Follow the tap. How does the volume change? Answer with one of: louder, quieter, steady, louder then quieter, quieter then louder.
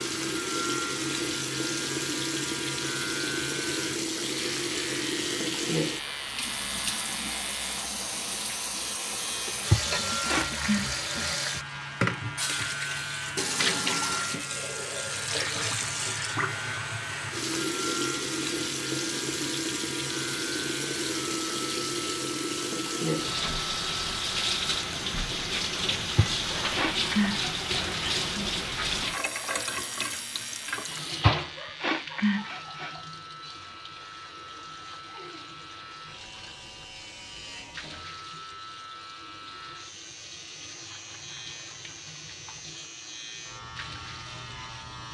quieter.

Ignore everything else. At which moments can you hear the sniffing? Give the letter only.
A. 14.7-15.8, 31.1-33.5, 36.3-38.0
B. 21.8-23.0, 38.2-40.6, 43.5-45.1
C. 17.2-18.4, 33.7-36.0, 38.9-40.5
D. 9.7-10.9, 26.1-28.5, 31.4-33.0
D.